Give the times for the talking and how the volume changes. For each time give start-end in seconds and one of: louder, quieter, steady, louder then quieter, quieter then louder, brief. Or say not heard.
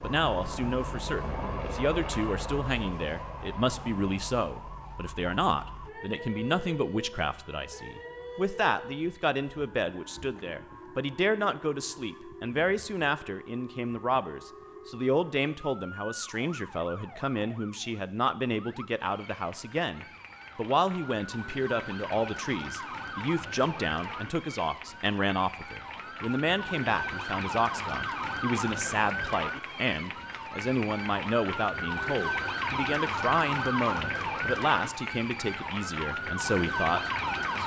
0.0-37.6 steady.